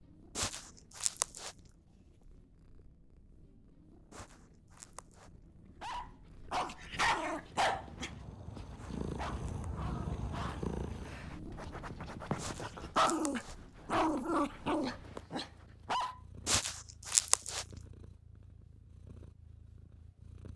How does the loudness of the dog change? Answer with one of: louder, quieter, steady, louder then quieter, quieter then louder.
quieter then louder.